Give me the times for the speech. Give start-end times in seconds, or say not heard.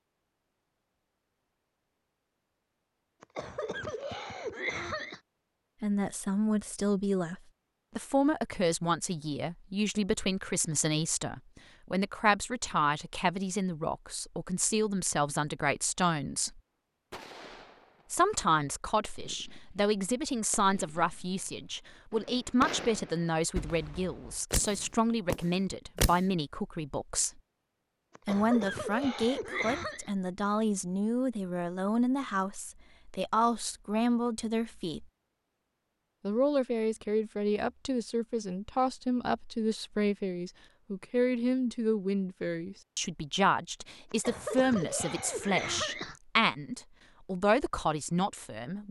5.8-16.6, 18.1-27.4, 28.2-35.0, 36.2-48.8.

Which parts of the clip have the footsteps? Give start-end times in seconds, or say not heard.
not heard.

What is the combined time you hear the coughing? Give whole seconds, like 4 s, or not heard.
6 s.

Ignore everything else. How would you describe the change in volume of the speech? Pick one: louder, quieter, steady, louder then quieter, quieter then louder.
steady.